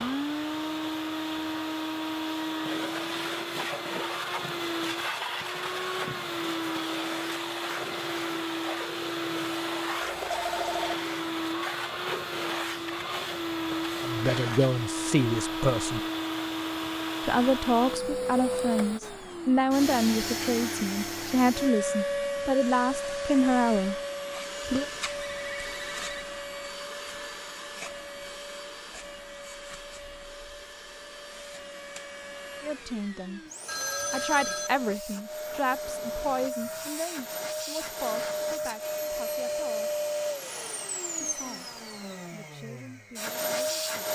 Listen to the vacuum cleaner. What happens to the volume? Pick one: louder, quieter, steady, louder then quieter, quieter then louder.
quieter then louder.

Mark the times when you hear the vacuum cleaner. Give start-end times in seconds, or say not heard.
0.0-44.1.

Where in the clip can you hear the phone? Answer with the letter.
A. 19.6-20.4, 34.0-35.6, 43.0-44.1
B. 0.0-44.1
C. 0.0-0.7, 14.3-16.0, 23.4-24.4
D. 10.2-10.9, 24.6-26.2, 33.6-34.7
D.